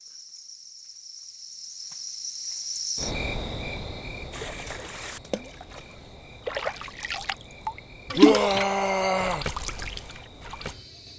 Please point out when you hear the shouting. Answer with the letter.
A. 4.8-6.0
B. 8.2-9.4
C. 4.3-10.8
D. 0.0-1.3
B.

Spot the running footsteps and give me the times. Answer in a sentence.
You can't hear the running footsteps here.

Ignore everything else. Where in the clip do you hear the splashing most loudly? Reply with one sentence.
The volume of the splashing peaks at 8 seconds.